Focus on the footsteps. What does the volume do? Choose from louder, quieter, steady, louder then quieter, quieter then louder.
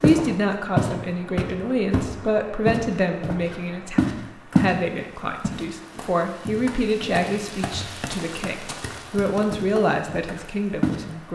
quieter then louder.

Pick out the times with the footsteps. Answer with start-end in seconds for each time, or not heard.
0.0-4.8, 5.4-11.0.